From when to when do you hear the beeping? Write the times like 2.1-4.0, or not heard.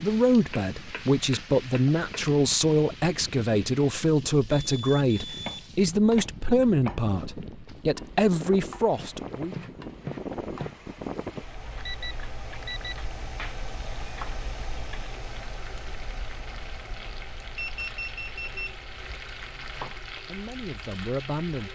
4.5-5.7, 11.8-12.9, 17.6-18.8.